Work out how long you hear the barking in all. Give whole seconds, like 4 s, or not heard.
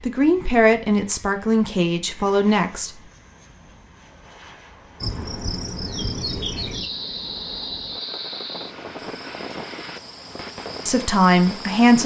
not heard.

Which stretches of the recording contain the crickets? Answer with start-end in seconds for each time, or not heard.
5.0-12.0.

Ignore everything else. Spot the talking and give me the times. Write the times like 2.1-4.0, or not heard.
0.0-2.9, 10.8-12.0.